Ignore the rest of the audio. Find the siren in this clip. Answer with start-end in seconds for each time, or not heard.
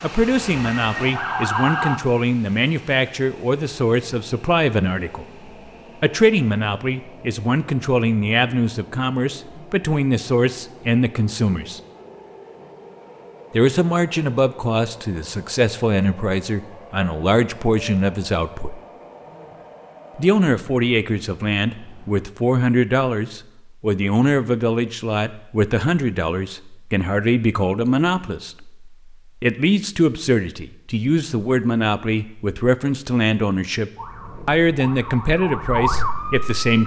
0.1-2.0, 34.0-36.8.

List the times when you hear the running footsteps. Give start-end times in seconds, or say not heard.
not heard.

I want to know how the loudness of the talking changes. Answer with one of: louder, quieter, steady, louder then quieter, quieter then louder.
steady.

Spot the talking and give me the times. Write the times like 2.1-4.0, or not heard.
0.0-5.2, 6.0-11.8, 13.5-18.8, 20.1-36.8.